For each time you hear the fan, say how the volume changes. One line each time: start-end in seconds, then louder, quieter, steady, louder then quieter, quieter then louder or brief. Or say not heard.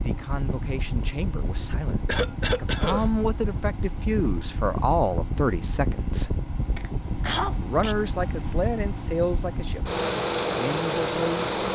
0.0-11.7 louder.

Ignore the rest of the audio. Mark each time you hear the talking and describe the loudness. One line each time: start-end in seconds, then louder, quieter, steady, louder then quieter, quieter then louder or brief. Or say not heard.
0.0-6.5 louder
7.6-11.7 quieter then louder.